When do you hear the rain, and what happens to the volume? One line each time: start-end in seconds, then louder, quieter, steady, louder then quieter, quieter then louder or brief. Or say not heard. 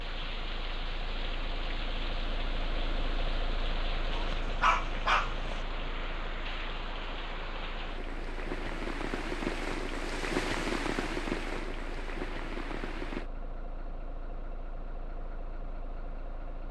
0.0-13.3 louder.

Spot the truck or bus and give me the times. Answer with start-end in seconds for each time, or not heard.
0.0-16.6.